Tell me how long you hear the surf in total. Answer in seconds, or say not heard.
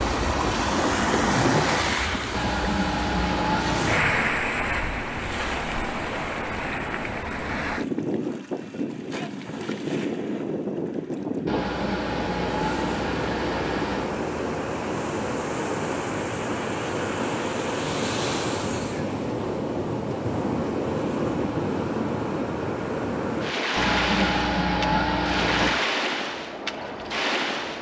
28 s.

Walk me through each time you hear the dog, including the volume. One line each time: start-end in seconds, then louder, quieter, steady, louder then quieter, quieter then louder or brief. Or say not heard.
not heard.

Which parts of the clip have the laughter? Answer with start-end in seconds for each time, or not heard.
2.3-3.9, 11.4-14.1, 23.8-25.8.